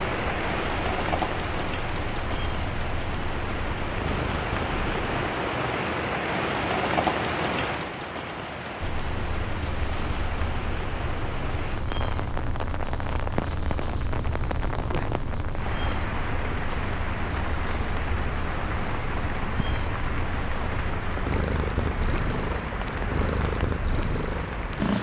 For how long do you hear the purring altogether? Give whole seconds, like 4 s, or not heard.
21 s.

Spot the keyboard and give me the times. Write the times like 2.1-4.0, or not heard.
not heard.